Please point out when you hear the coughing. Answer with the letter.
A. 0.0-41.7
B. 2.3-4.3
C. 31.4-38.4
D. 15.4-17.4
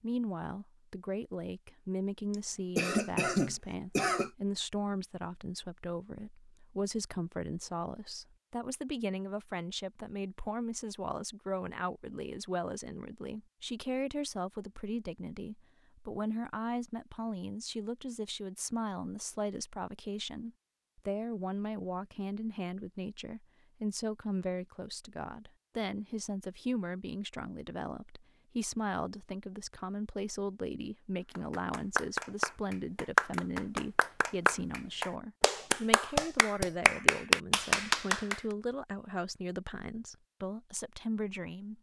B.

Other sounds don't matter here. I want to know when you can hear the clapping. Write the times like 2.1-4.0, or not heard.
31.4-38.4.